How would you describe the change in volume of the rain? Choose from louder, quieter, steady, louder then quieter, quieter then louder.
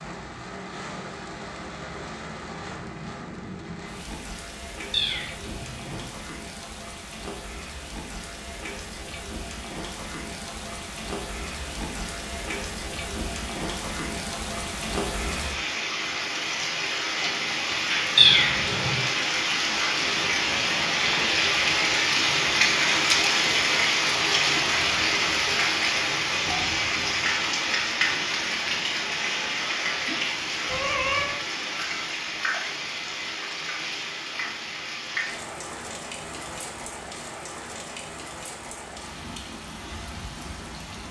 louder then quieter.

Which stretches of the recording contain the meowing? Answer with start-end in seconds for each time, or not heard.
4.9-6.0, 18.1-18.9, 30.6-31.4.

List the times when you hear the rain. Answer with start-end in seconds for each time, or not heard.
0.0-41.0.